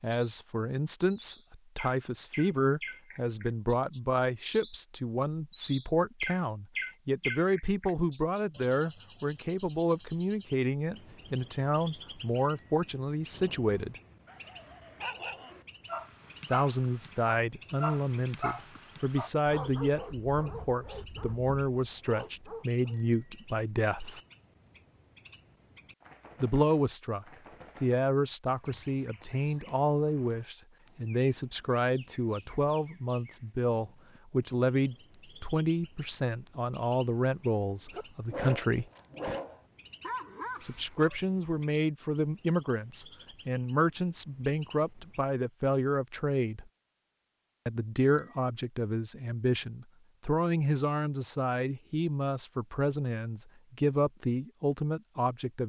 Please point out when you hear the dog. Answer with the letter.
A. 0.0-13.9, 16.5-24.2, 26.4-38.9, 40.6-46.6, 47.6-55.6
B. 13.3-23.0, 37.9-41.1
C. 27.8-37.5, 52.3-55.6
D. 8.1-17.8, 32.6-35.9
B.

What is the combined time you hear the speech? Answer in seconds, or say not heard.
48 s.